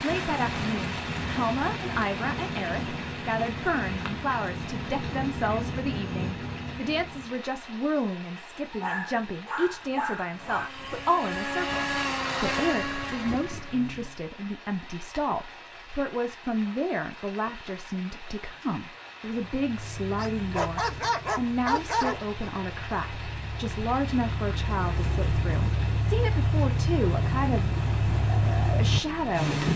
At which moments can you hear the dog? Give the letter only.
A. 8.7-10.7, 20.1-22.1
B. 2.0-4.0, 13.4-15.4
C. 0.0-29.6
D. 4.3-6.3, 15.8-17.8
A.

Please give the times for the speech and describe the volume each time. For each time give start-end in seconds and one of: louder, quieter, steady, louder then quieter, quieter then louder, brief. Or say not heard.
0.0-29.6 steady.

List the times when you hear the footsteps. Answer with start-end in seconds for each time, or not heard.
not heard.